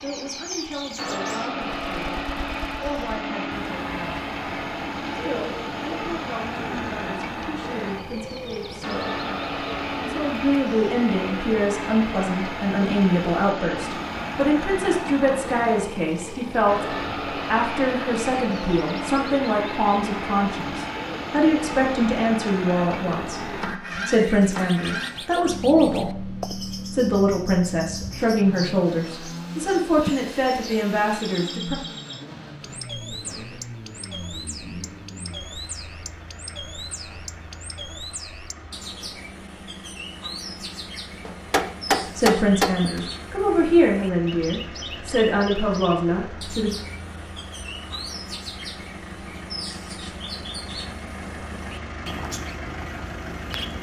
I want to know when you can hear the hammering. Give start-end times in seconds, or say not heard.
41.2-43.0.